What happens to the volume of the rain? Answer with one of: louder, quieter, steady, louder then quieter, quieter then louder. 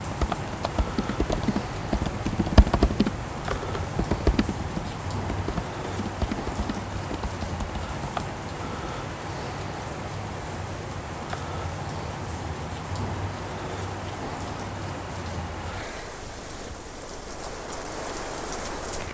steady.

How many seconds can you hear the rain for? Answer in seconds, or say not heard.
19 s.